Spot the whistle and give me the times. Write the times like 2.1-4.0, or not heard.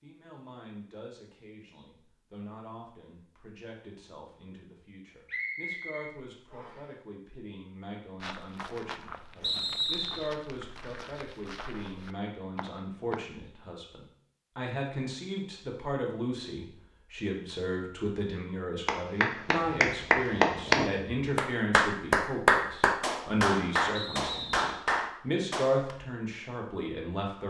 5.2-6.8, 9.4-10.3, 23.9-24.8.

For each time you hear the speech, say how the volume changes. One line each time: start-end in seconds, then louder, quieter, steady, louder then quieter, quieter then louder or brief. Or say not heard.
0.0-27.4 louder.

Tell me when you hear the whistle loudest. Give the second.
10 s.